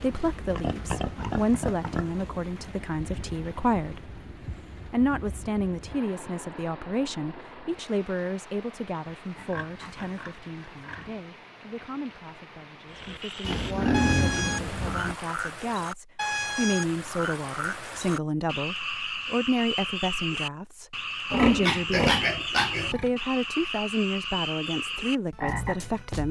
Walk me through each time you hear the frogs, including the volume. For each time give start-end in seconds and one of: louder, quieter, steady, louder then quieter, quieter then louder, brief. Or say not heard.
12.9-26.2 steady.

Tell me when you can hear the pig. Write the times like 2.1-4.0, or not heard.
0.5-2.1, 9.1-11.2, 13.4-15.2, 21.3-23.1.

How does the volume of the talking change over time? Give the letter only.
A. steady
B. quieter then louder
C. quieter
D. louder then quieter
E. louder
B.